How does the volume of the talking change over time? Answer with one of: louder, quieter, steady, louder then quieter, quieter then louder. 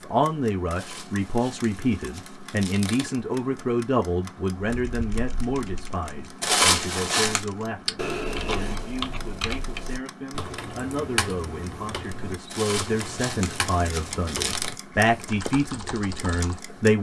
quieter then louder.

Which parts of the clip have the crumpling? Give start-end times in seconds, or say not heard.
0.7-3.1, 6.4-7.5, 12.5-14.8.